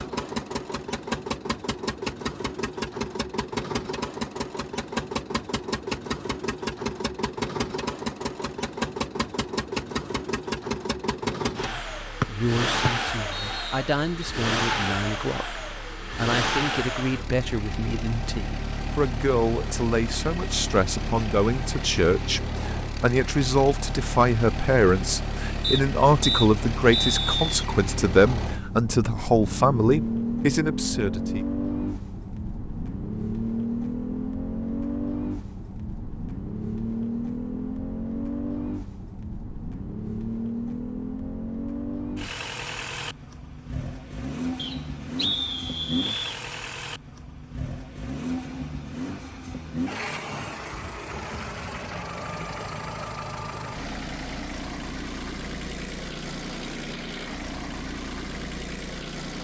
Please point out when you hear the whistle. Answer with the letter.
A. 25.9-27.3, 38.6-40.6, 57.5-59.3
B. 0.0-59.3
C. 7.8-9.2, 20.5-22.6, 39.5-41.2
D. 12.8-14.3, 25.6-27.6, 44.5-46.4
D.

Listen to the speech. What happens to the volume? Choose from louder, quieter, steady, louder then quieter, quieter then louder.
louder.